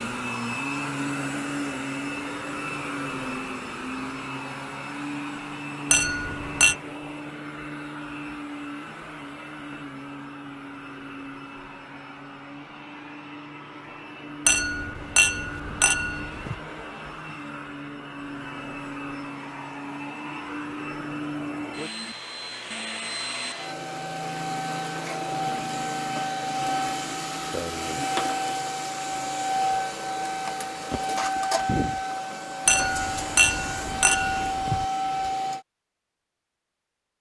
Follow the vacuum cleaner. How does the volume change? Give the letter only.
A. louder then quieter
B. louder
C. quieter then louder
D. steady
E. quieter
C.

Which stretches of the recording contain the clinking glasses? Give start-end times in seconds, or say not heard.
5.9-6.8, 14.4-16.6, 32.6-34.9.